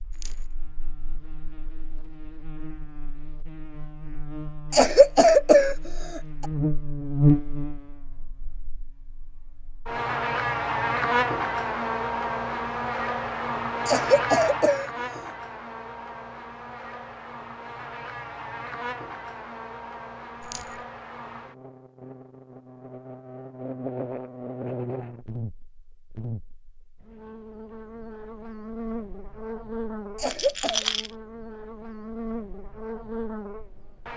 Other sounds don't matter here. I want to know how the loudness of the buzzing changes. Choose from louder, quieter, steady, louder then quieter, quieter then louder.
louder then quieter.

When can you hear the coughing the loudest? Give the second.
5 s.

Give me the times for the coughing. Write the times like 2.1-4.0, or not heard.
4.7-6.5, 13.8-14.9, 30.1-30.9.